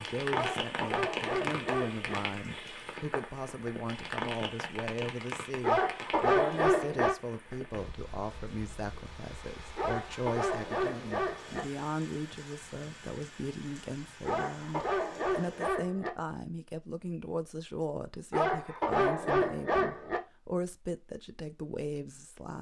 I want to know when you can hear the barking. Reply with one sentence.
The barking can be heard from 0.3 to 2.2 s, from 5.6 to 7.2 s, from 9.8 to 11.7 s, from 14.2 to 16.1 s and from 18.3 to 20.2 s.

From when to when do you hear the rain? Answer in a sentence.
The rain can be heard from 0.0 to 15.7 s.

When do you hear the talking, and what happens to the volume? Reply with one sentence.
You can hear the talking from 0.0 to 22.5 s, at a steady volume.